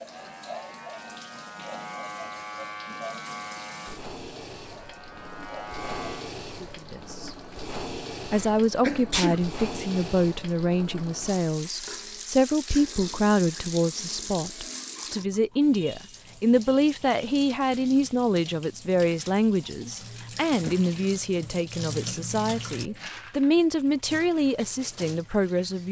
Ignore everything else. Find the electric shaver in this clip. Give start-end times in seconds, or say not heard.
0.0-6.3.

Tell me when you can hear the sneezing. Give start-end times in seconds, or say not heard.
8.3-9.4.